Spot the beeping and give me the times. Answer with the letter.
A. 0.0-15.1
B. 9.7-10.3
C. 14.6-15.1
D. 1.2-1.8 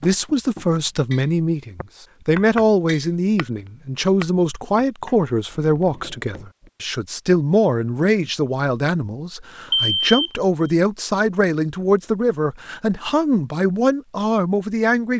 B.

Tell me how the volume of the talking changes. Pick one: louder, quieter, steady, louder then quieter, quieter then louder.
steady.